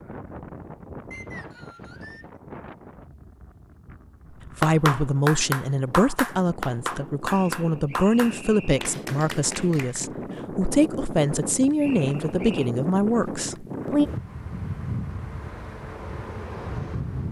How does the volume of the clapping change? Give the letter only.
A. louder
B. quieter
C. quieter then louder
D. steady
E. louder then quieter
B.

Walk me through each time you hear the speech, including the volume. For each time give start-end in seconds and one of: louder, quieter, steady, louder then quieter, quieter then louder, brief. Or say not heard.
4.5-14.1 steady.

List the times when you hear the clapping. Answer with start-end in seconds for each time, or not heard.
4.3-10.1.